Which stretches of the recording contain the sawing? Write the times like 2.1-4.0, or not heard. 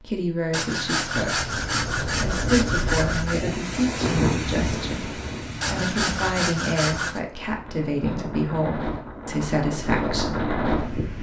0.5-3.5, 5.6-7.2.